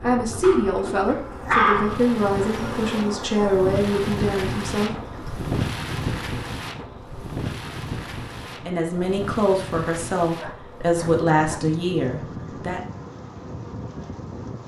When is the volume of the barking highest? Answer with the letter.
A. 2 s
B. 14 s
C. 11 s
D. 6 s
A.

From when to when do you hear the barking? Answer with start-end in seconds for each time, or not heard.
0.4-2.0, 10.3-11.7.